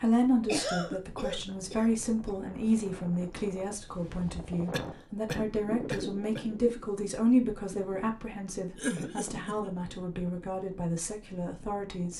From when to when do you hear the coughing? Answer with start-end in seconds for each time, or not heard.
0.5-2.3, 4.7-6.4, 8.8-9.7.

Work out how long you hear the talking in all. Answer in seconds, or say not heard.
12 s.